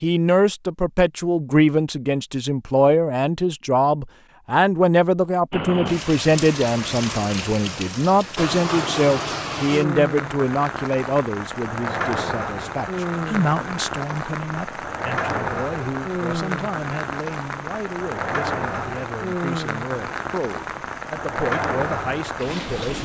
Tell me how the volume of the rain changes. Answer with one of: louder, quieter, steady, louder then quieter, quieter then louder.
steady.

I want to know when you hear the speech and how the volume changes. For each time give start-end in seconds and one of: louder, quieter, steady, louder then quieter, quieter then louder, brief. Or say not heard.
0.0-23.0 quieter.